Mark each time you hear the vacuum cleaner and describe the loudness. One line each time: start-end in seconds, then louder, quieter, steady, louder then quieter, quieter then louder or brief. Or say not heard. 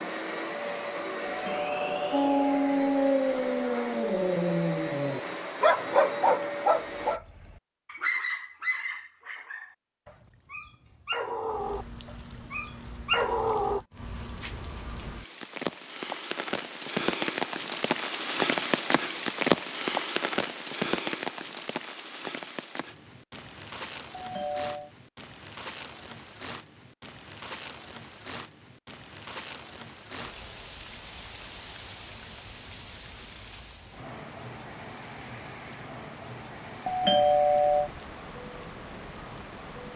0.0-7.2 steady.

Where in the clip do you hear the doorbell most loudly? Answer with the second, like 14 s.
37 s.